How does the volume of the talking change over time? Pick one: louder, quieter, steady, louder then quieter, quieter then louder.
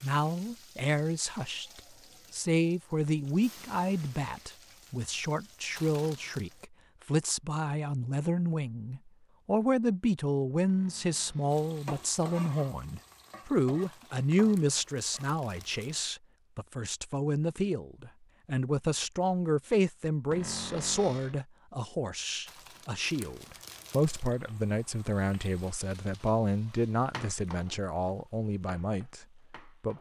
steady.